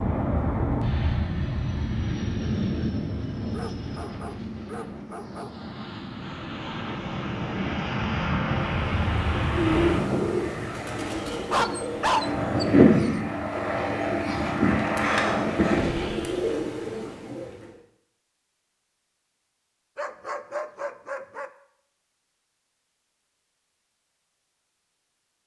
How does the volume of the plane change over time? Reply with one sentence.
The loudness of the plane goes down, then up.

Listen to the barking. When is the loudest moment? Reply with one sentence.
The loudest moment of the barking is at 12 seconds.